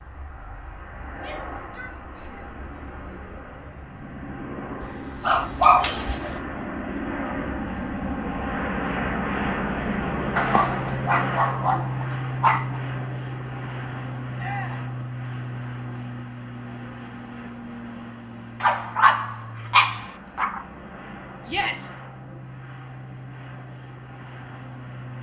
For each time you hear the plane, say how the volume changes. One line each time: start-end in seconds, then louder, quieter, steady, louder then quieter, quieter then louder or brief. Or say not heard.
0.0-25.1 louder then quieter.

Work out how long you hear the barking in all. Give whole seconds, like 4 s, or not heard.
6 s.